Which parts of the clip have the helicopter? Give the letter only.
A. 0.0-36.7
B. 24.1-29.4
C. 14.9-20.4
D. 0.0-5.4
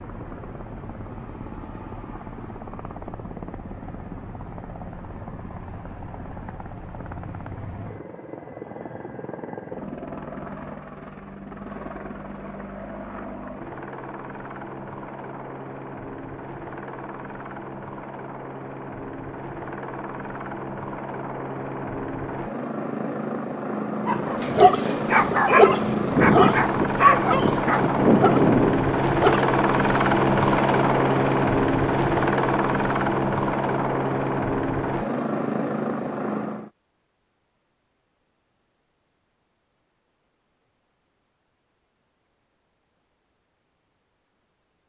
A.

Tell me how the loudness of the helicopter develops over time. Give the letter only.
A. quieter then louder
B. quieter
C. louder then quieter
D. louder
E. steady
D.